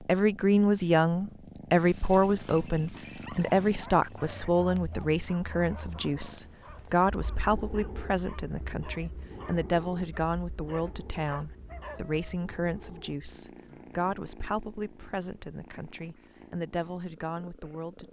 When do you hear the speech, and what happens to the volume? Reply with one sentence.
You can hear the speech from 0.1 to 18.0 s, getting quieter.